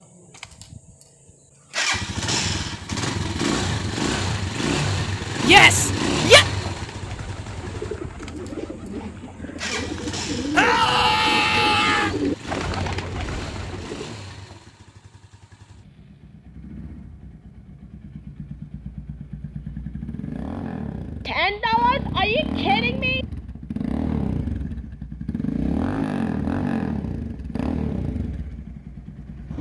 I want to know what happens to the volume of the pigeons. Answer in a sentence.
The volume of the pigeons goes up.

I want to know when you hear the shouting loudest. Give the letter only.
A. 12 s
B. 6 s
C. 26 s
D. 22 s
B.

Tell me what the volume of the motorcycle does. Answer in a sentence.
The loudness of the motorcycle goes down, then up.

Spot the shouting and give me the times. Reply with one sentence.
You can hear the shouting from 5.4 to 6.5 s, from 10.6 to 12.1 s and from 21.2 to 23.2 s.